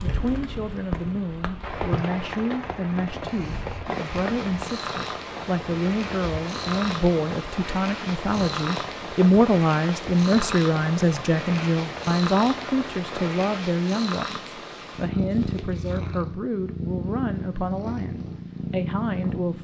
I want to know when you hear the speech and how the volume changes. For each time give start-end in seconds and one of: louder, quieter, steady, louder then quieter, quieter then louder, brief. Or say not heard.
0.0-19.6 louder then quieter.